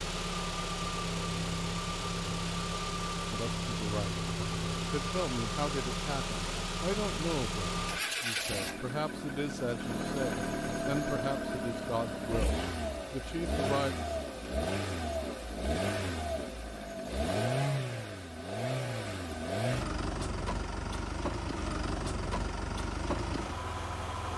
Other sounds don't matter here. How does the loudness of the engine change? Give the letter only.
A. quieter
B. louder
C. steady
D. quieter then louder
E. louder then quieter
C.